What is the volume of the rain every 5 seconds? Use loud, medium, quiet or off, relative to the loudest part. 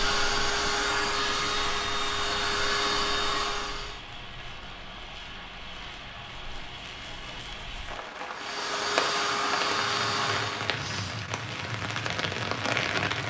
medium, medium, loud.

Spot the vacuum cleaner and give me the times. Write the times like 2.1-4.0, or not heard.
0.0-4.0, 8.3-10.8.